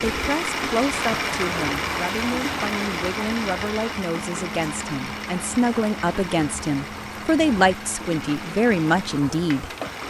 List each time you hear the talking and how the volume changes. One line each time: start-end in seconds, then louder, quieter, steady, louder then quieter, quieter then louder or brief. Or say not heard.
0.0-9.7 louder.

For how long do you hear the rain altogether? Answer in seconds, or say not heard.
10 s.